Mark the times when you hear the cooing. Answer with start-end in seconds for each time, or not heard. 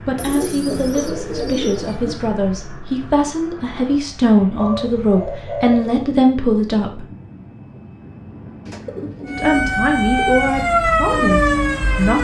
0.1-2.2, 4.5-6.0, 8.7-10.3.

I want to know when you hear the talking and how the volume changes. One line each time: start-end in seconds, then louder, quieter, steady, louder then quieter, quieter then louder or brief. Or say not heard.
0.0-7.0 louder
9.3-12.2 brief.